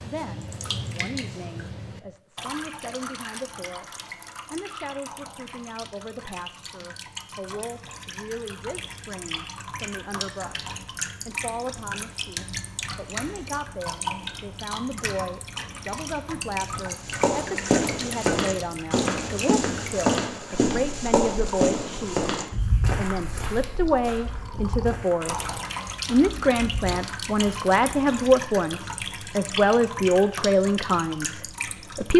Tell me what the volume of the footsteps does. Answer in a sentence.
The volume of the footsteps goes down.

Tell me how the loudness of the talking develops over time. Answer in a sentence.
The loudness of the talking goes up.